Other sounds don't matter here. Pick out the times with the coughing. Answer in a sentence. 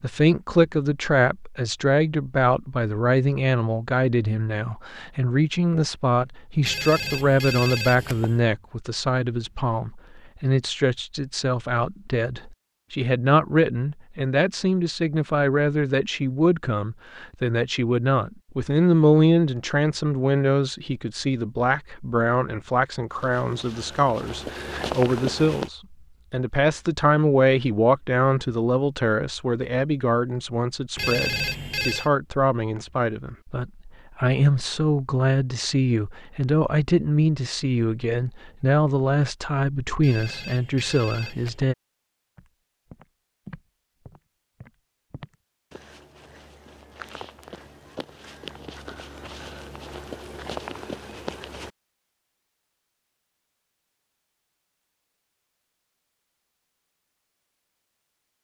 The coughing can't be heard in this clip.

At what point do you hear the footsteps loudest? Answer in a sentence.
The volume of the footsteps peaks at 25 seconds.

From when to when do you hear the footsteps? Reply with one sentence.
The footsteps can be heard from 23.1 to 25.7 s and from 42.4 to 51.7 s.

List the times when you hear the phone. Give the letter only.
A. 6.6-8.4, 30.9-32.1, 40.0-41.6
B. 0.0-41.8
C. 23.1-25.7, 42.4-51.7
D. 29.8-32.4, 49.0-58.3
A.